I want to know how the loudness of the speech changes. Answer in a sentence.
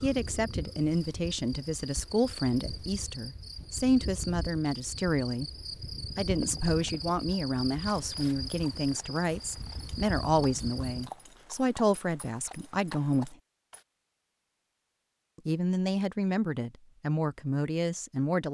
The loudness of the speech stays about the same.